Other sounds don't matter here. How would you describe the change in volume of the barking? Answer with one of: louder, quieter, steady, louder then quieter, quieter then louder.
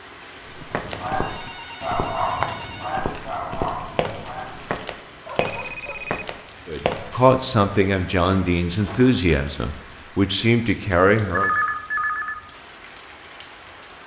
quieter.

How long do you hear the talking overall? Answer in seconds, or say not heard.
5 s.